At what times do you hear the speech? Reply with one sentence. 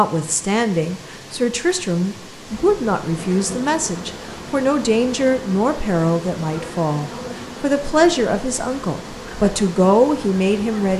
You can hear the speech from 0.0 to 10.9 s.